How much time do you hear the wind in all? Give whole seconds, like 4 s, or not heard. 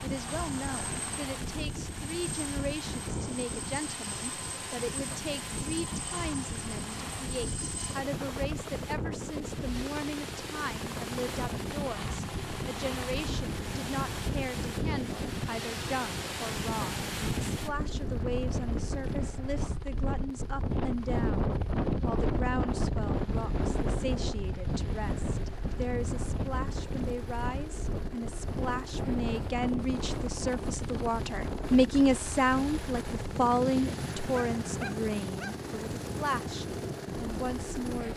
38 s.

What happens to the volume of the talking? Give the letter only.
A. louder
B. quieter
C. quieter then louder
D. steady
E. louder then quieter
A.